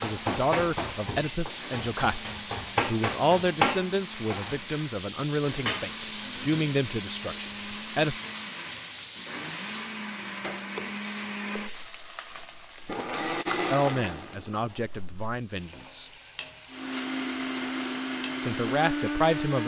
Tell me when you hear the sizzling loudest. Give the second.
3 s.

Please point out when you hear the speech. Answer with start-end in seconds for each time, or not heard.
0.0-8.2, 13.7-16.1, 18.4-19.6.